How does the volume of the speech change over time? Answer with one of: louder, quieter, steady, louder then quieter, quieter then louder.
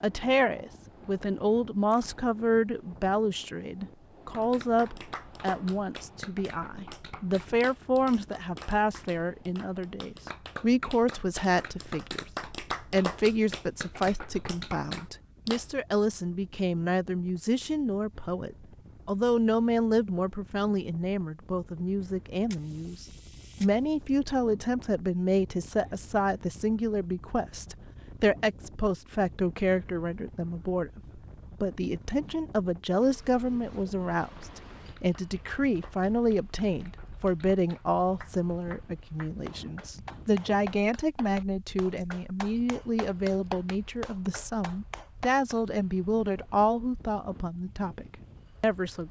steady.